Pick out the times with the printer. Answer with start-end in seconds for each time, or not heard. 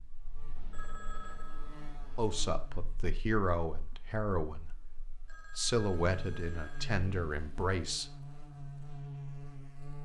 not heard.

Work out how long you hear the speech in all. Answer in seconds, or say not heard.
6 s.